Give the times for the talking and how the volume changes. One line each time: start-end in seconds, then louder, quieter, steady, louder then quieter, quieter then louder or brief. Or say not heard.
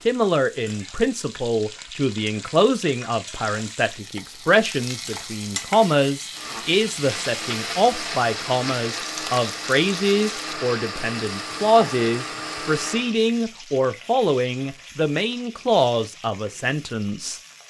0.1-17.4 steady.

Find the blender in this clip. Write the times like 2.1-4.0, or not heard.
6.3-13.2.